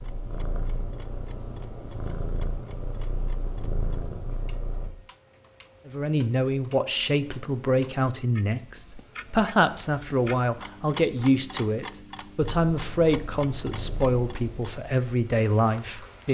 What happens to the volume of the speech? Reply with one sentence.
The volume of the speech stays about the same.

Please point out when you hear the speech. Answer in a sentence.
The speech can be heard from 5.8 to 16.2 s.